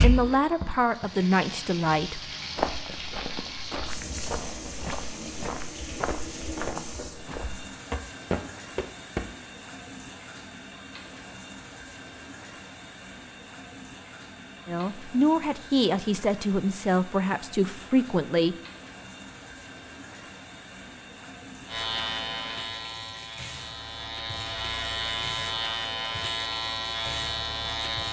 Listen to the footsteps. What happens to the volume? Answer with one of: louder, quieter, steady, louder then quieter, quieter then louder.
louder.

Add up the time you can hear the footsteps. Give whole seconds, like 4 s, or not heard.
7 s.